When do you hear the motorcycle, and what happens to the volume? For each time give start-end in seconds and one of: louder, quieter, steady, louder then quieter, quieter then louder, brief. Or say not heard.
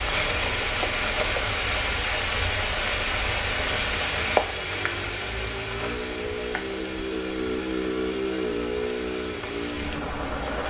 0.0-10.6 louder.